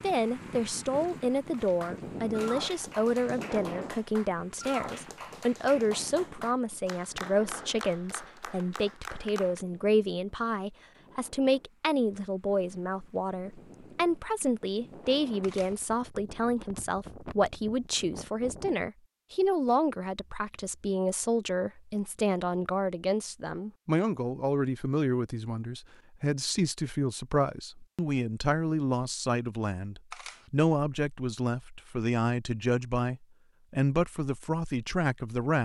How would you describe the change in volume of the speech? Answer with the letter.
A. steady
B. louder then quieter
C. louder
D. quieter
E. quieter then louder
A.